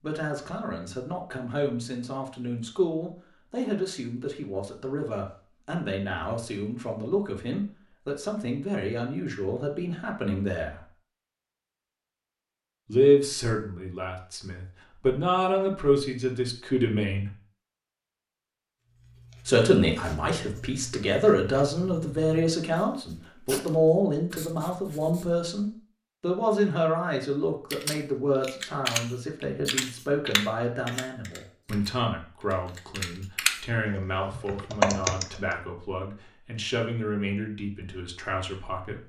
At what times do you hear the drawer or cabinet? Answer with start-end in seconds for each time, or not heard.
not heard.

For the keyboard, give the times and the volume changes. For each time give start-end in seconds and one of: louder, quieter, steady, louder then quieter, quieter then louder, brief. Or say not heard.
27.7-35.4 quieter then louder.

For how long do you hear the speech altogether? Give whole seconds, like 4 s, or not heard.
35 s.